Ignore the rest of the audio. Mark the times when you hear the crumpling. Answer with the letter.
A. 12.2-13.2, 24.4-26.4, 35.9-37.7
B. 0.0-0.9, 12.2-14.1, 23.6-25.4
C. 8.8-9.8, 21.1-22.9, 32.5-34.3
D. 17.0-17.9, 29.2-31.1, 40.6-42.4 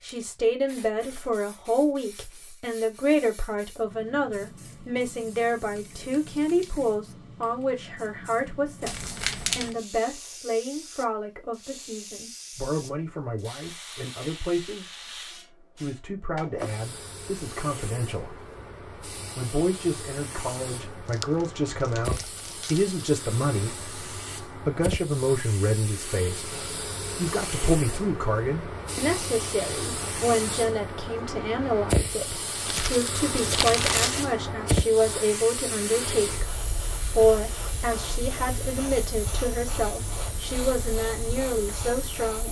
C.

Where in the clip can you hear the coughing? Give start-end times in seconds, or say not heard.
not heard.